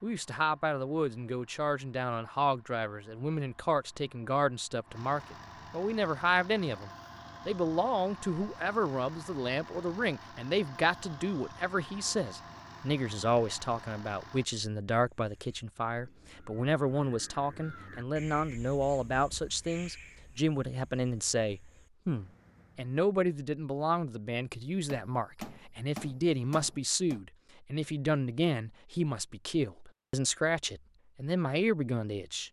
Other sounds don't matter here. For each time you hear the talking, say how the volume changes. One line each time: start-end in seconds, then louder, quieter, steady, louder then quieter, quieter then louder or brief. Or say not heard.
0.0-32.4 steady.